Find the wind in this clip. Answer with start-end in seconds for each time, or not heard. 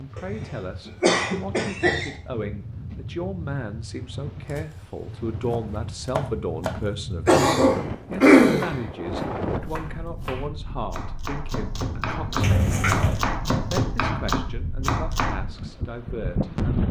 0.0-16.8.